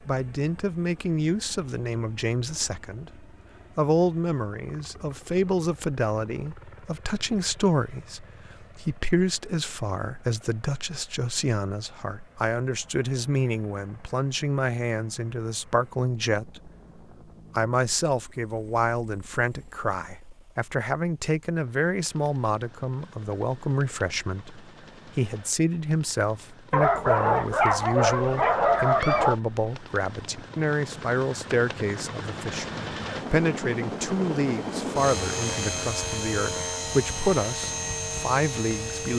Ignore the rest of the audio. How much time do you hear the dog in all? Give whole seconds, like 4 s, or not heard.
3 s.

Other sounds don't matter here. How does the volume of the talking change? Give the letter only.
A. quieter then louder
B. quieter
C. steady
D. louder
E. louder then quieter
C.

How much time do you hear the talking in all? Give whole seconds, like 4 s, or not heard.
38 s.